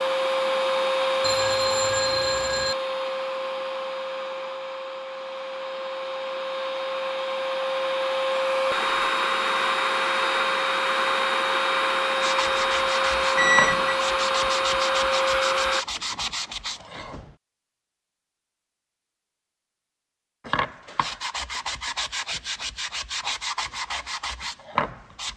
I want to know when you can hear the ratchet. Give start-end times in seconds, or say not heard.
not heard.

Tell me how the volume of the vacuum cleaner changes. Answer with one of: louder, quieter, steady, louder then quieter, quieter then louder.
quieter then louder.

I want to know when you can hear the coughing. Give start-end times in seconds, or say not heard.
not heard.